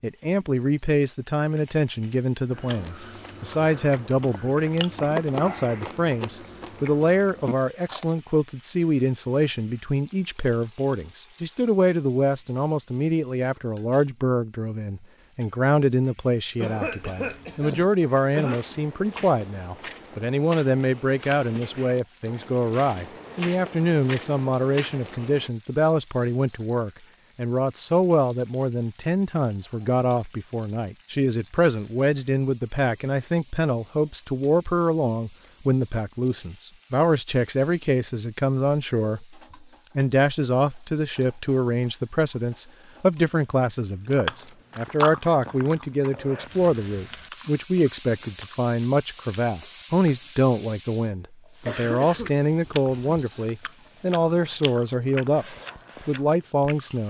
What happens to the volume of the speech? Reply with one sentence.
The volume of the speech stays about the same.